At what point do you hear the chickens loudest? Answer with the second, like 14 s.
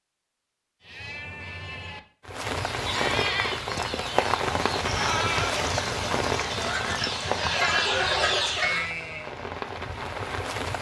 8 s.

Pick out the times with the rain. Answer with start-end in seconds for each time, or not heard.
2.2-10.7.